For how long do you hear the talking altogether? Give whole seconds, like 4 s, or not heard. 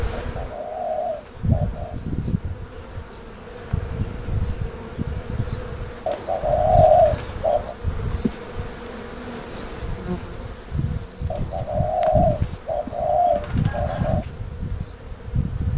not heard.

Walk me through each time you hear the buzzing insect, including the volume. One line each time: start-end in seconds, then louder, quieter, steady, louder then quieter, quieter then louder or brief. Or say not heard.
0.0-15.7 steady.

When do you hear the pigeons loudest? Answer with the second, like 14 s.
7 s.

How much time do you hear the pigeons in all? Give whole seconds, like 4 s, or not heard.
6 s.